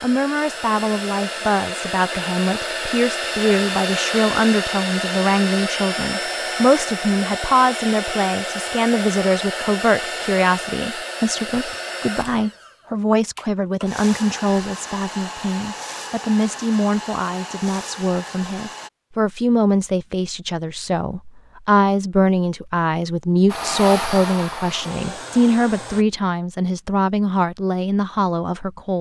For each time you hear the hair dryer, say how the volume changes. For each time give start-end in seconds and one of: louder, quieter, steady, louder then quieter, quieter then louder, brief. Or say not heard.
0.0-18.9 quieter
23.4-26.1 brief.